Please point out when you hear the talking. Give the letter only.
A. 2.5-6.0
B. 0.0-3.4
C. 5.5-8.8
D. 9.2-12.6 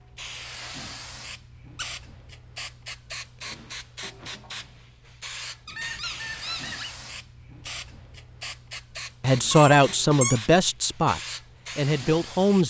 D.